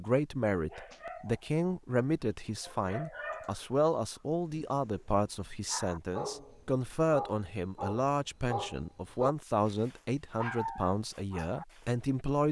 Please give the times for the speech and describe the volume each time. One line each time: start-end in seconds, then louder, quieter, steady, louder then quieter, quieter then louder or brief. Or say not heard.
0.0-12.4 steady.